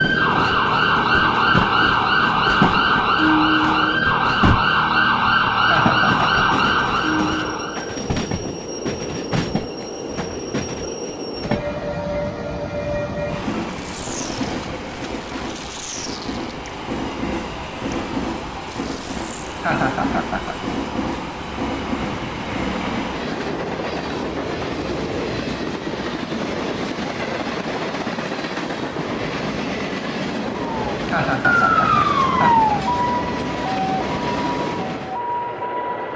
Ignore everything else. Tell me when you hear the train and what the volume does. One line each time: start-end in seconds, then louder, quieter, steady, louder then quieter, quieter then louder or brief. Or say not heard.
0.0-36.1 steady.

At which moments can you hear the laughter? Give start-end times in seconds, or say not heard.
5.5-6.2, 19.4-20.6, 30.9-32.7.